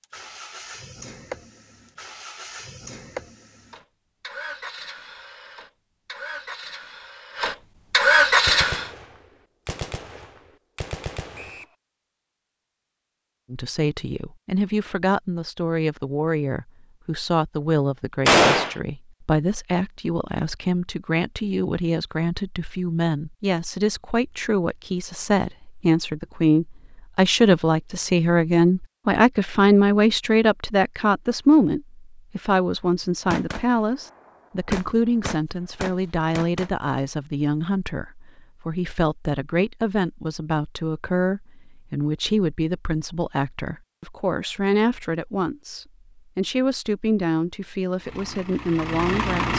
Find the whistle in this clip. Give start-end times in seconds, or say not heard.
11.3-11.8.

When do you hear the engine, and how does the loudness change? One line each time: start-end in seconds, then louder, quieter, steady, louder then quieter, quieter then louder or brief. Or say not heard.
0.0-8.9 louder
48.0-49.5 brief.